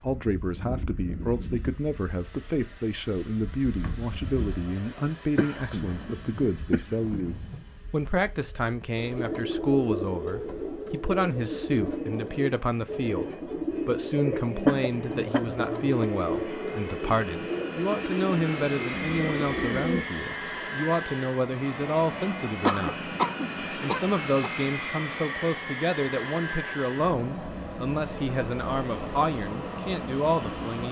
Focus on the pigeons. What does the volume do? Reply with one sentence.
The loudness of the pigeons stays about the same.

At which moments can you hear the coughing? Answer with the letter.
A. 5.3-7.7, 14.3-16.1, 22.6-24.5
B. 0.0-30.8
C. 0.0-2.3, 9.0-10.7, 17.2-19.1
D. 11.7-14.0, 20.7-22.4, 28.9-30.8
A.